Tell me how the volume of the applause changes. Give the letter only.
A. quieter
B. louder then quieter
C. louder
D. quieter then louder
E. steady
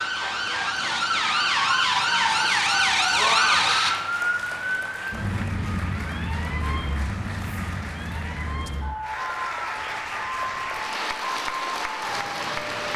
C.